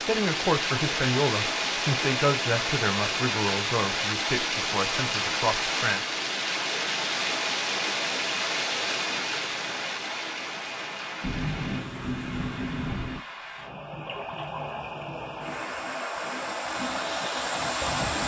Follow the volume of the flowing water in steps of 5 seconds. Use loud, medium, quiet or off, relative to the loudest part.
loud, loud, medium, loud.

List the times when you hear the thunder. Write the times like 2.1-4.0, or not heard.
11.2-13.2.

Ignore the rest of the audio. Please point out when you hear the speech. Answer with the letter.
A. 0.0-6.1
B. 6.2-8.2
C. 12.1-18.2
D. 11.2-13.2
A.